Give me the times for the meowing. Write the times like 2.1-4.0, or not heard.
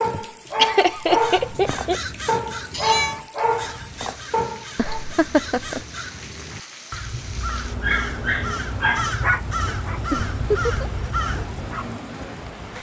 2.7-3.2.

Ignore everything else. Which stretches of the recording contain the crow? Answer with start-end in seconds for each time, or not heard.
1.0-11.7.